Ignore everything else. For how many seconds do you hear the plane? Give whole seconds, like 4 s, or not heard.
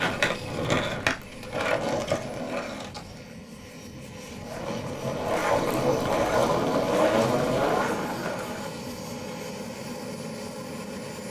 11 s.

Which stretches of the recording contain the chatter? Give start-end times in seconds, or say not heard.
not heard.